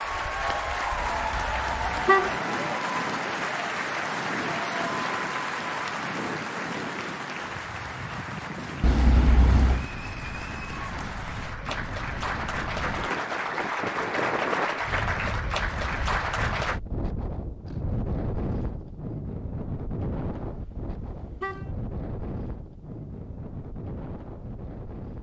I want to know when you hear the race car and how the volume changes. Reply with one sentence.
The race car can't be heard in this clip.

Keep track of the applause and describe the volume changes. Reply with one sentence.
The loudness of the applause goes down, then up.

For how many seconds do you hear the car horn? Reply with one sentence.
The car horn can be heard for 4 seconds in total.